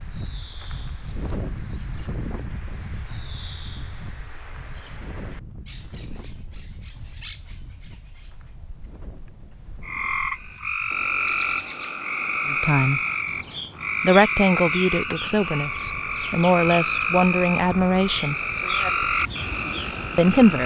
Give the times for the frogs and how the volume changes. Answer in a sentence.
The frogs can be heard from 9.8 to 20.6 s, at a steady volume.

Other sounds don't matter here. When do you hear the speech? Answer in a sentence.
The speech can be heard from 12.5 to 13.0 s, from 14.0 to 18.4 s and from 20.1 to 20.6 s.